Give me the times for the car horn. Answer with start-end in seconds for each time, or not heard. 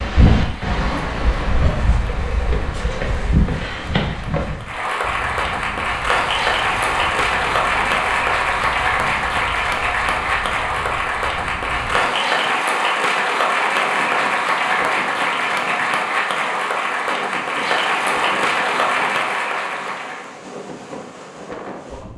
not heard.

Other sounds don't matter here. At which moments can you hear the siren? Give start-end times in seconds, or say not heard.
not heard.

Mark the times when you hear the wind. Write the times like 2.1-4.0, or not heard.
0.0-22.1.